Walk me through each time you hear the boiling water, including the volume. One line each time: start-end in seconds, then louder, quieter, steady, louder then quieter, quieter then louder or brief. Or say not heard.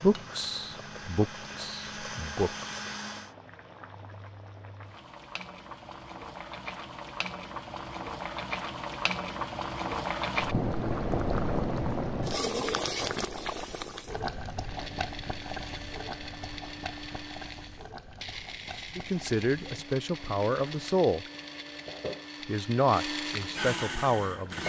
0.0-24.6 louder then quieter.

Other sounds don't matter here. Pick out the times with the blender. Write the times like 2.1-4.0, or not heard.
0.0-3.4, 14.6-24.6.